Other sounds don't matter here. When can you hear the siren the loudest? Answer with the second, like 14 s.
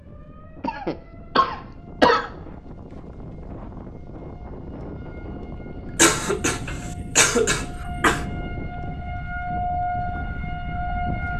10 s.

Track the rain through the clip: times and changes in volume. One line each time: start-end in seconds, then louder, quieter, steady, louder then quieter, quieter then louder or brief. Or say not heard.
not heard.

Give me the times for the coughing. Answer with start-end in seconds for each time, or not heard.
0.6-2.3, 6.0-8.2.